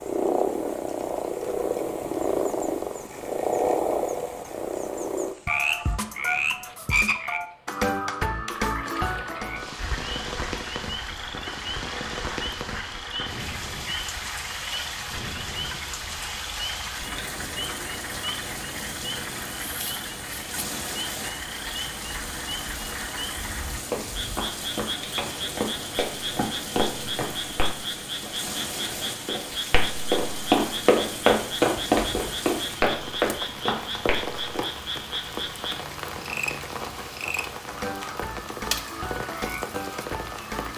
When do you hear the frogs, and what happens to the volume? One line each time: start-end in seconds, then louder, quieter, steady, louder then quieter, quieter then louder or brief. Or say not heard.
0.0-40.7 quieter.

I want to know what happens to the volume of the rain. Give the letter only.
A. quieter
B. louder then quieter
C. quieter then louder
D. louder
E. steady
D.